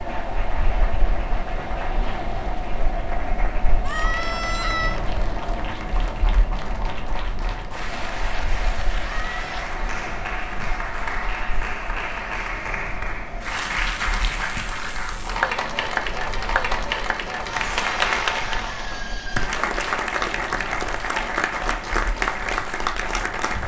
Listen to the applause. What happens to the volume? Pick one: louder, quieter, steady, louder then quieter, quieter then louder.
louder.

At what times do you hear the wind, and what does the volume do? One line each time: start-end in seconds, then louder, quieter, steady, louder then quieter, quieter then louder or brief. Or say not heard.
0.0-23.6 quieter.